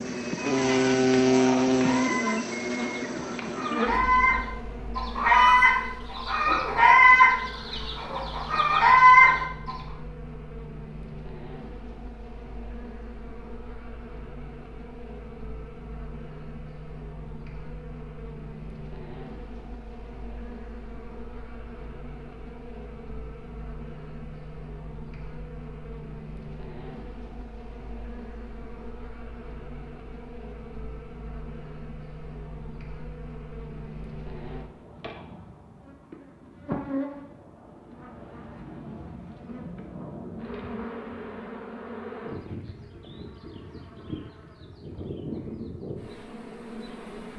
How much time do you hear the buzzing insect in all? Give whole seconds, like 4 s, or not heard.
47 s.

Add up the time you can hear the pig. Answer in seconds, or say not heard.
not heard.